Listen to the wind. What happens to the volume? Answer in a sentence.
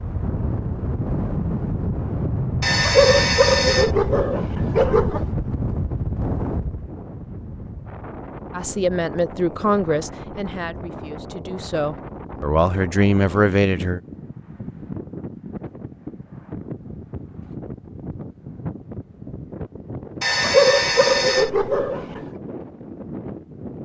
The volume of the wind goes down.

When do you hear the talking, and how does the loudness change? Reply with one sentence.
The talking can be heard from 8.6 to 14.0 s, getting quieter then louder.